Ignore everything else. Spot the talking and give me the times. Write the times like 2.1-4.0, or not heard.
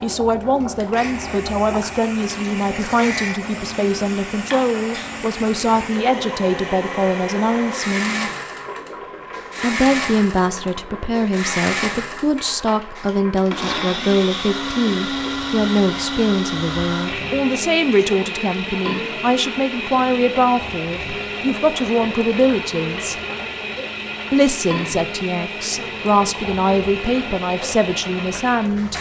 0.0-8.3, 9.6-23.1, 24.3-28.9.